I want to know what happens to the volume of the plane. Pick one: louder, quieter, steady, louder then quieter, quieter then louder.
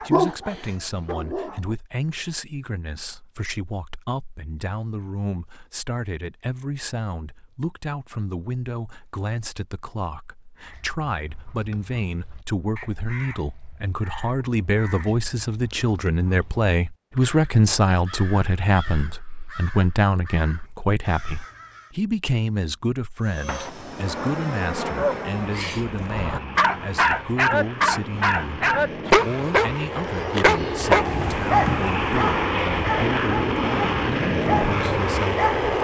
quieter then louder.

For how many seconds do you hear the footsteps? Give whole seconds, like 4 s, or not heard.
not heard.